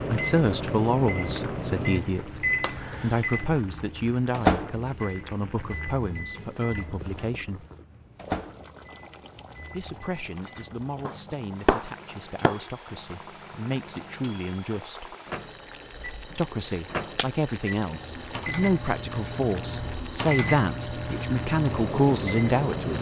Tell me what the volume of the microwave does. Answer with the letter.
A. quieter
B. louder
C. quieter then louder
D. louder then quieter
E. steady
C.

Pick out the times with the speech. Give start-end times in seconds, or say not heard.
0.1-7.7, 9.7-15.2, 16.4-22.9.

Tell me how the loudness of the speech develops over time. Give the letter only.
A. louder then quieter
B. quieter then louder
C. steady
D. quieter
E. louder
B.